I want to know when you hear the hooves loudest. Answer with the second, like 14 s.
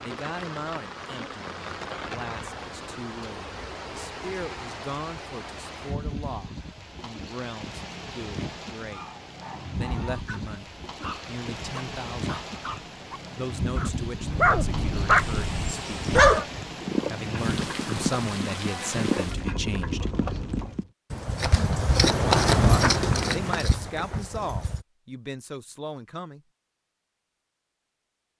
22 s.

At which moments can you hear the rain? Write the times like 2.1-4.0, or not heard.
0.0-20.9.